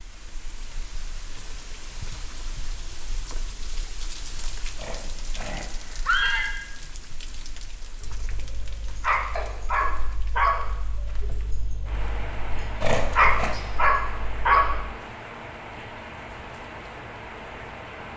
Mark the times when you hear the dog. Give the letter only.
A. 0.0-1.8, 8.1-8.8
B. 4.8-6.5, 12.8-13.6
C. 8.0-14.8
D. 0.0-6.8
C.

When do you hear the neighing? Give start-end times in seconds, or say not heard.
4.8-6.5, 12.8-13.6.